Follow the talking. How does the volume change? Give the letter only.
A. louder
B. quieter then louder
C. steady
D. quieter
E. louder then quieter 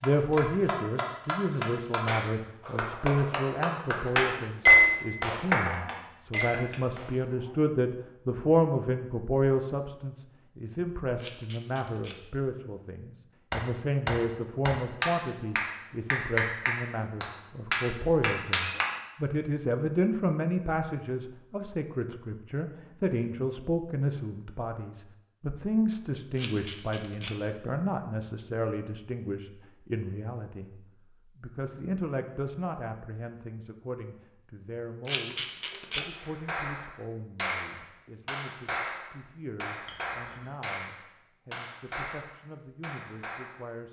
D.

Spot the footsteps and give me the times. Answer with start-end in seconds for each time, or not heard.
not heard.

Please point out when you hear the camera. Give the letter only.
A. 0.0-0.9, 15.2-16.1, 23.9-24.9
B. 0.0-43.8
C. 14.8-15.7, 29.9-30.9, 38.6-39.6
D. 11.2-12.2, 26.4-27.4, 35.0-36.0
D.